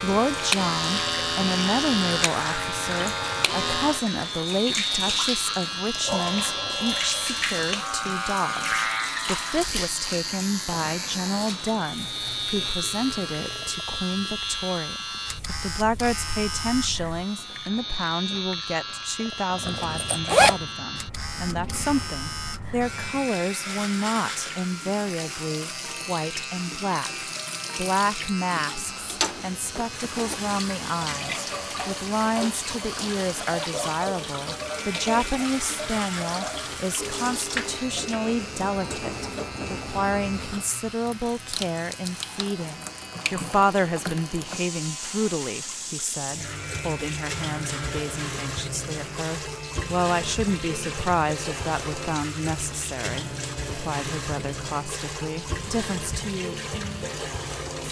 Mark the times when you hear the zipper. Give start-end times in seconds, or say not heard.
19.6-20.6, 29.8-30.4.